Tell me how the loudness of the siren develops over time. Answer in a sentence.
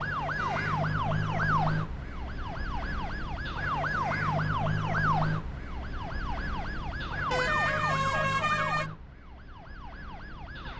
The loudness of the siren goes down.